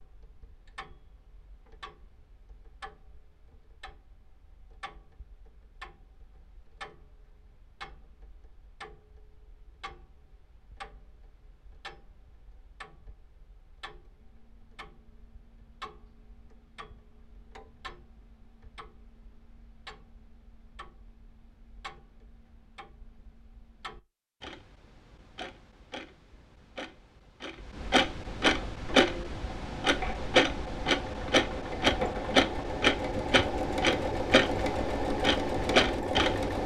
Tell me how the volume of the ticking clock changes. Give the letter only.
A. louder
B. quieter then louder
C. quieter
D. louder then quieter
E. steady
A.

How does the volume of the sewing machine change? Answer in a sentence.
The volume of the sewing machine goes up.